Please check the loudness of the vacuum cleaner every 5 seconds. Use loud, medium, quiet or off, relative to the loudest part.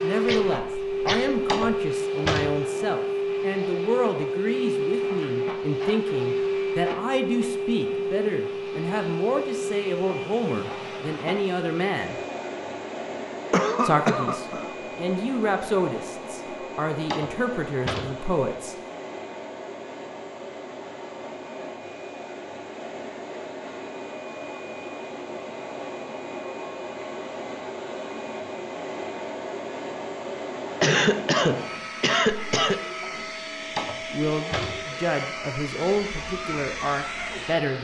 loud, loud, medium, medium, medium, medium, medium, medium.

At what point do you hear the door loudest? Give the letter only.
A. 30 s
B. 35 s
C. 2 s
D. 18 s
C.